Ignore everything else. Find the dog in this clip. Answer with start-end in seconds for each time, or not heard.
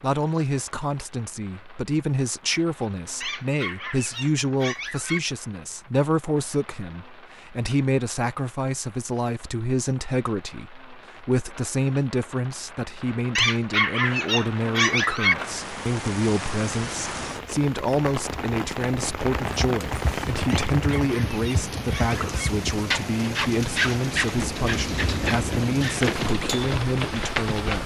3.2-5.2, 13.3-15.3, 20.5-22.4.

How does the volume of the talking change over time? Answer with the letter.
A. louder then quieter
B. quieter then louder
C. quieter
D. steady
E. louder
D.